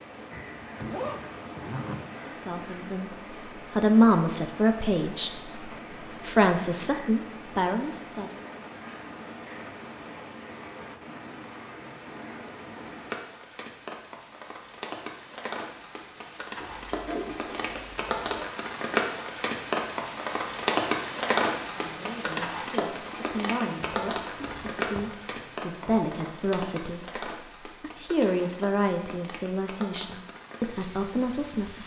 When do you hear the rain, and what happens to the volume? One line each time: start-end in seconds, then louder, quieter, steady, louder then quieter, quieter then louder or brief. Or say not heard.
0.0-31.8 louder then quieter.